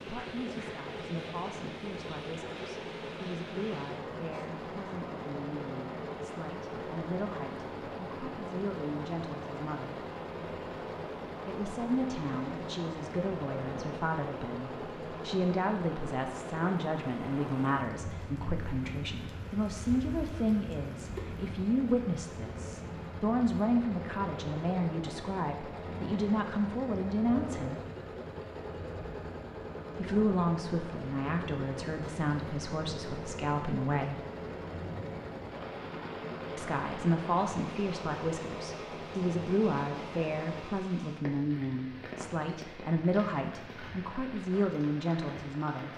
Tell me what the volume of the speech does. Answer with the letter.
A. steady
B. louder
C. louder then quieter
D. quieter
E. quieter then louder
B.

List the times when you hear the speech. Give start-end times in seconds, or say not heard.
0.0-10.0, 11.4-27.8, 29.9-34.2, 36.5-45.9.